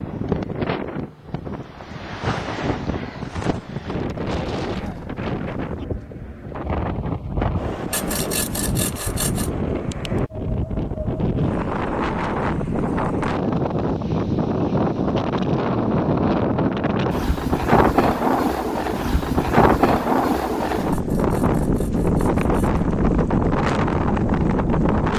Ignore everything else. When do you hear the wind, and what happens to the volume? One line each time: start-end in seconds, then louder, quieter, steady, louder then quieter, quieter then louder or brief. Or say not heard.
0.0-25.1 louder.